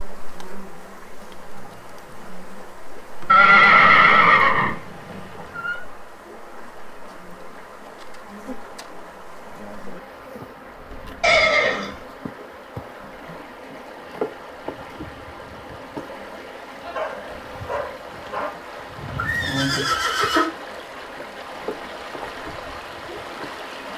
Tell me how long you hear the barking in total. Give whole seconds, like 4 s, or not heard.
2 s.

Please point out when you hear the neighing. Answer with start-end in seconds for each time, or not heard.
3.2-5.8, 11.2-11.9, 19.1-20.4.